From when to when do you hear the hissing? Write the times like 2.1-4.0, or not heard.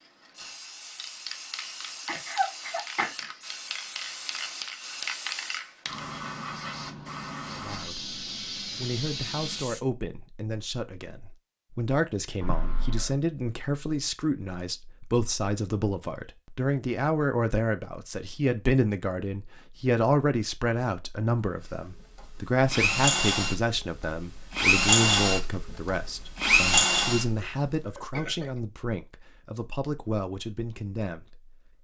0.0-9.8.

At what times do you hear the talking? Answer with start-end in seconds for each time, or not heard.
7.5-31.6.